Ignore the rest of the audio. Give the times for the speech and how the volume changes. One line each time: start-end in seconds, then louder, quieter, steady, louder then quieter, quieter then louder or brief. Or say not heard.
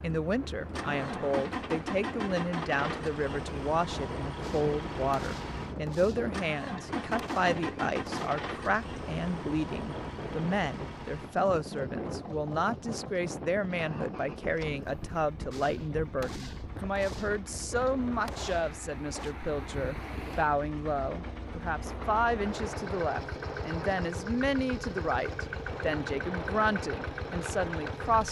0.0-28.2 steady.